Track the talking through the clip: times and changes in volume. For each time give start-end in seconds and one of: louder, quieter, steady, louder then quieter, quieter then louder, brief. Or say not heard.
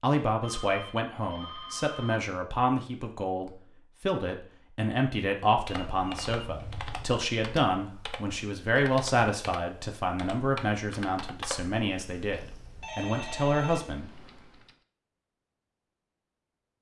0.0-14.1 steady.